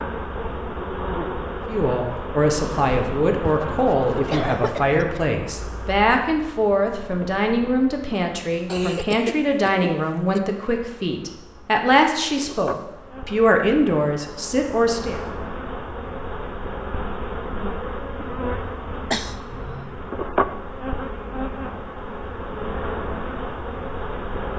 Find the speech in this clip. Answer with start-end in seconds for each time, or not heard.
1.6-15.2.